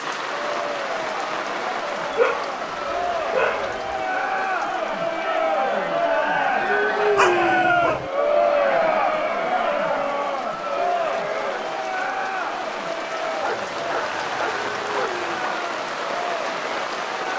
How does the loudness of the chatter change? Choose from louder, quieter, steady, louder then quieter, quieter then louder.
louder then quieter.